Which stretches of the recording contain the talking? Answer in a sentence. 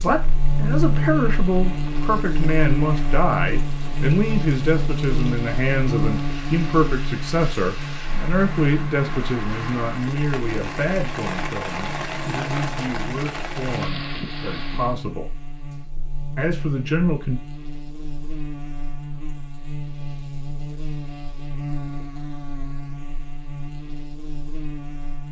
The talking can be heard from 0.0 to 15.3 s and from 16.4 to 17.4 s.